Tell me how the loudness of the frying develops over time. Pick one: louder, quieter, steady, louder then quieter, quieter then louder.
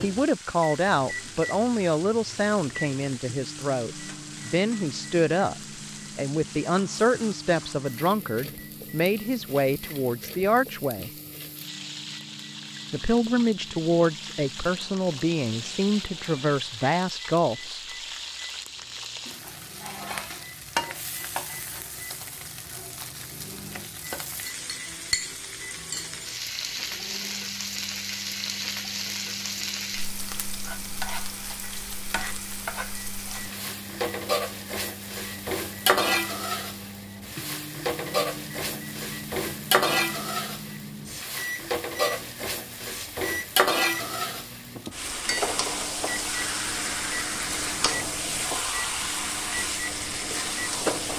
louder.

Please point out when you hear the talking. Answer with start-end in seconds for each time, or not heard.
0.0-5.5, 6.2-11.1, 12.9-17.9.